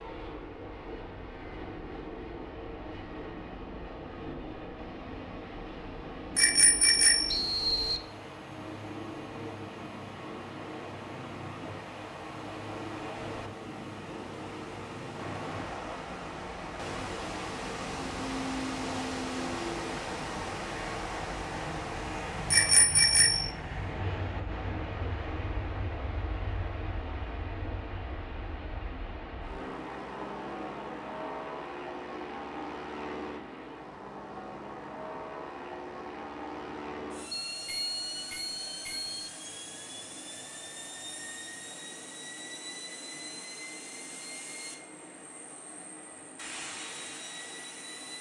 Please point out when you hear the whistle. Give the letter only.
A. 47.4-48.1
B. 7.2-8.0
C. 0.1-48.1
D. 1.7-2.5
B.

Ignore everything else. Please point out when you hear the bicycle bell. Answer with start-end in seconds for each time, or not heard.
6.3-7.3, 22.5-23.5, 37.5-39.1.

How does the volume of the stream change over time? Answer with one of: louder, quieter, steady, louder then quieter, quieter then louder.
louder then quieter.